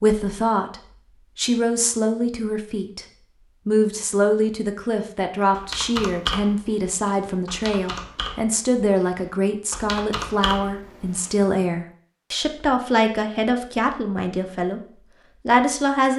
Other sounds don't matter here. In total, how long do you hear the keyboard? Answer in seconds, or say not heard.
6 s.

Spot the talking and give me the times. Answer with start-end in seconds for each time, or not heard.
0.0-0.8, 1.4-3.0, 3.6-16.1.